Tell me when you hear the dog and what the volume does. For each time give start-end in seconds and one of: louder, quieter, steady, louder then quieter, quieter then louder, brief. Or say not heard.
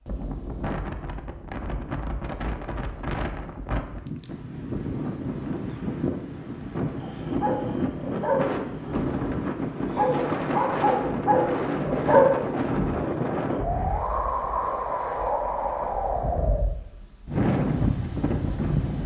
7.0-13.1 quieter then louder.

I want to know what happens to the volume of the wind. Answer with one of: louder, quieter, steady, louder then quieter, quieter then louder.
louder.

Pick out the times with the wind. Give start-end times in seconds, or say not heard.
0.0-19.0.